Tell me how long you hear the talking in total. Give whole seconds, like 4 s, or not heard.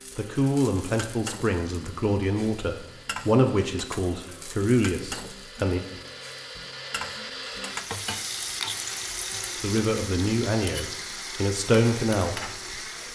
9 s.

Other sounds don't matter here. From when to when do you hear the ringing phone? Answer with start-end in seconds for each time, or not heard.
not heard.